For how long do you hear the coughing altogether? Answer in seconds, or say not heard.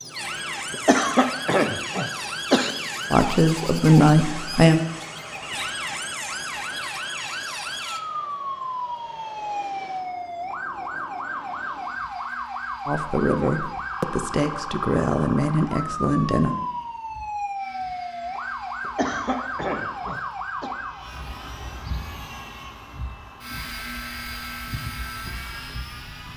4 s.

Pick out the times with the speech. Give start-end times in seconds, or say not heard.
3.1-4.8, 12.8-16.6.